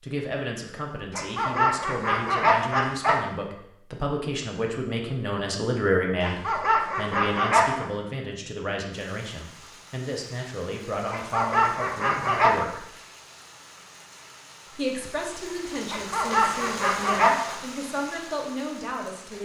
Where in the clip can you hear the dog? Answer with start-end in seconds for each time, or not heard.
1.1-3.1, 6.2-7.9, 11.1-12.6, 15.9-17.6.